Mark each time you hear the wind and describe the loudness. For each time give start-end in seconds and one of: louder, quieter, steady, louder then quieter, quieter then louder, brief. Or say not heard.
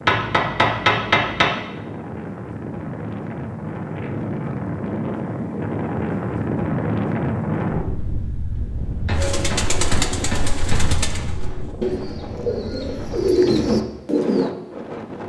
0.0-15.2 louder then quieter.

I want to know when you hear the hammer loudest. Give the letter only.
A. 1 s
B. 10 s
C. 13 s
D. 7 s
A.